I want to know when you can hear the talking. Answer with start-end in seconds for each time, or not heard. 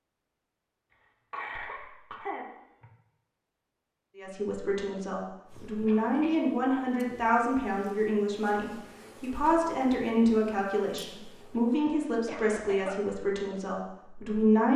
4.2-14.7.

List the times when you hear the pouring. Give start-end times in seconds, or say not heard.
not heard.